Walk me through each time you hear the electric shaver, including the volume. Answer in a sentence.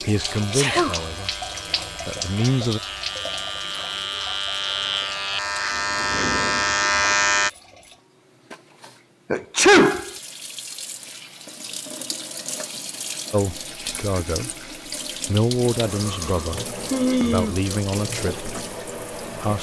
The electric shaver can be heard from 0.1 to 7.5 s, getting louder.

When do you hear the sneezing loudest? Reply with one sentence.
The loudest moment of the sneezing is at 10 seconds.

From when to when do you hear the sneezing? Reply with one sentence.
You can hear the sneezing from 0.3 to 0.9 s, from 9.3 to 10.1 s and from 16.1 to 17.6 s.